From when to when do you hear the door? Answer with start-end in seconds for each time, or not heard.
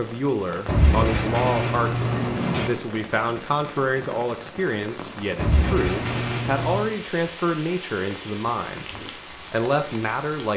0.7-2.7, 5.3-6.9.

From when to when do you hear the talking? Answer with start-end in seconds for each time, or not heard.
0.0-8.8, 9.5-10.5.